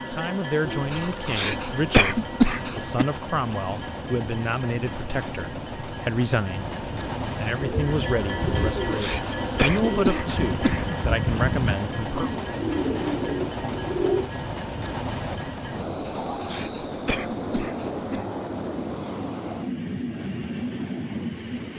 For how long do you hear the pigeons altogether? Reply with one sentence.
You can hear the pigeons for 7 seconds altogether.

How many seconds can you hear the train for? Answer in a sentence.
The train can be heard for 22 seconds in total.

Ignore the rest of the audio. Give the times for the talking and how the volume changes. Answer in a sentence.
You can hear the talking from 0.1 to 12.3 s, at a steady volume.